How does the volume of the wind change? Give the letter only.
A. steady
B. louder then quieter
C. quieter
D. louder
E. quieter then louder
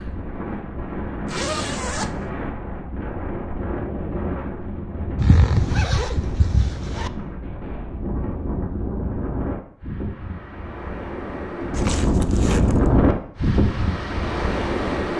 D.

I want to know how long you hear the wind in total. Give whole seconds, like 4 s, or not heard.
15 s.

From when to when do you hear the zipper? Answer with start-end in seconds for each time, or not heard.
1.2-2.2, 5.2-7.1, 11.7-12.9.